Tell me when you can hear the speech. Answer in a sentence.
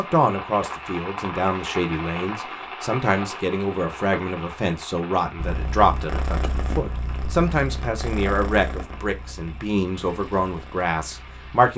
You can hear the speech from 0.0 to 11.7 s.